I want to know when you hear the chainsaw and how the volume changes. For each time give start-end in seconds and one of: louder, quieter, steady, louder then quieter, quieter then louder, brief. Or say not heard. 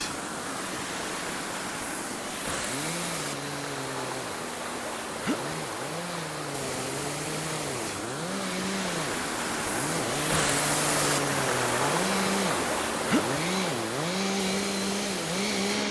0.0-15.8 louder.